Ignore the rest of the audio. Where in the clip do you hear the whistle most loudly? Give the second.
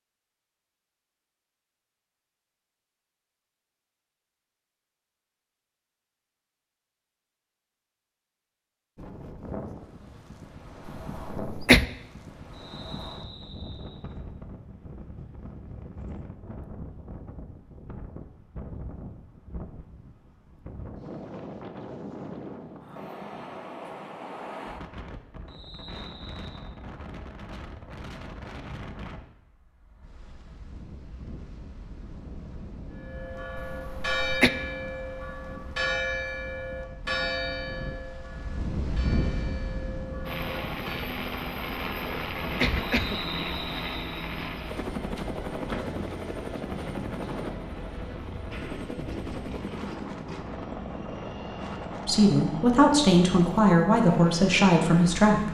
43 s.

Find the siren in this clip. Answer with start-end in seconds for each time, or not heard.
not heard.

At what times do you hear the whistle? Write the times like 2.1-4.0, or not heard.
12.5-14.0, 25.4-26.6, 43.0-44.3.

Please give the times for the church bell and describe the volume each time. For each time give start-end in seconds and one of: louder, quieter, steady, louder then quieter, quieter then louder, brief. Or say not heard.
33.0-41.0 quieter.